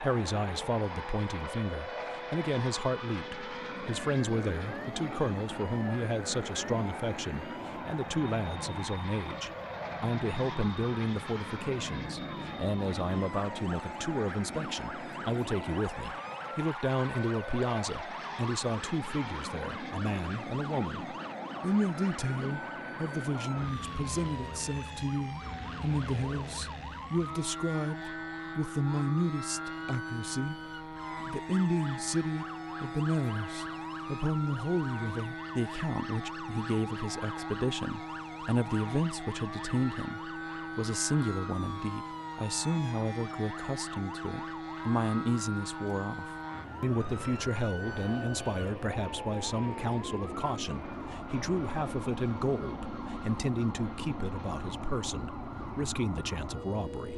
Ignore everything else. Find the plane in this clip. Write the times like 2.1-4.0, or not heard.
0.0-57.1.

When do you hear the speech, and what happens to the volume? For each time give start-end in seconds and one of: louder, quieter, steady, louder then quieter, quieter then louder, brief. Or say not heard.
0.0-30.6 steady
31.2-57.1 steady.